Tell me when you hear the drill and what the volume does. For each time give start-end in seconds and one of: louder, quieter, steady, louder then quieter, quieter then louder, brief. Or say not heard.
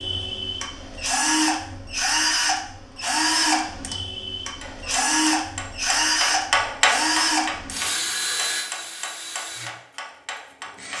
0.0-10.9 quieter.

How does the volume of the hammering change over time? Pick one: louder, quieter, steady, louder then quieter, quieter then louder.
louder then quieter.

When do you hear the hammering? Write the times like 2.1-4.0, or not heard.
4.6-10.9.